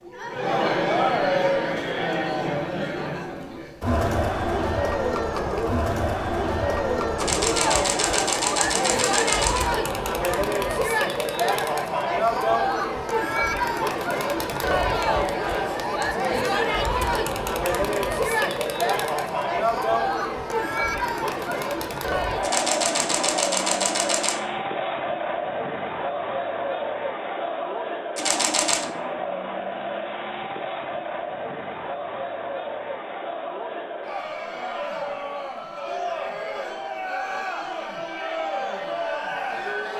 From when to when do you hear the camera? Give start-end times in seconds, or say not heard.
7.2-9.7, 22.4-24.4, 28.1-28.9.